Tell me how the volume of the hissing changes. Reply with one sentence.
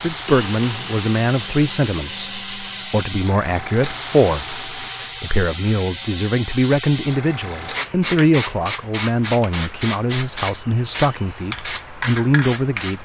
The loudness of the hissing stays about the same.